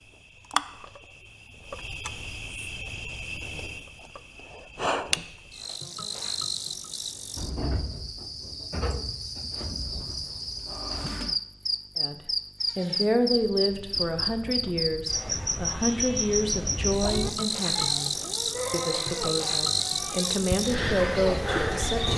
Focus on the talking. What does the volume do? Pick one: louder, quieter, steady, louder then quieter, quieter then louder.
quieter then louder.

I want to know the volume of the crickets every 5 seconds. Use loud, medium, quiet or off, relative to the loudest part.
medium, medium, loud, loud, loud.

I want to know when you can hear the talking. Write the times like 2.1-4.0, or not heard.
11.9-22.1.